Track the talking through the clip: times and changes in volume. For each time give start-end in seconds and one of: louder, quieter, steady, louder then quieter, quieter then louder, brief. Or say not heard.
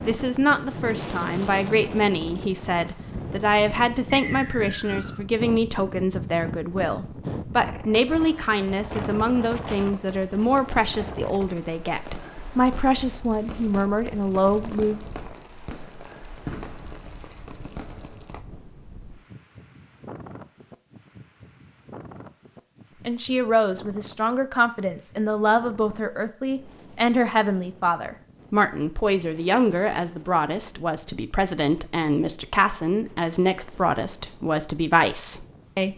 0.0-15.0 steady
23.1-35.9 steady.